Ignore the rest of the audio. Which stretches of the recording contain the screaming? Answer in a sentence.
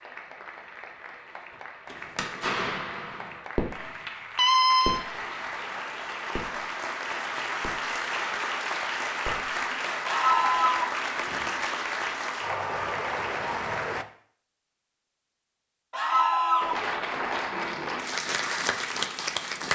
The screaming can be heard from 4.3 to 5.0 s, from 10.1 to 10.9 s and from 15.9 to 16.9 s.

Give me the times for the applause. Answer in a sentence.
The applause can be heard from 0.0 to 14.1 s and from 16.6 to 19.7 s.